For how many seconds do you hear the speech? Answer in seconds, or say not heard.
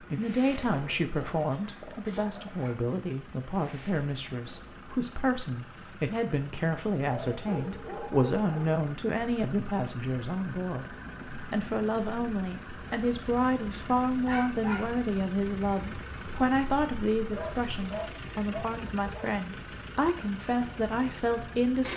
22 s.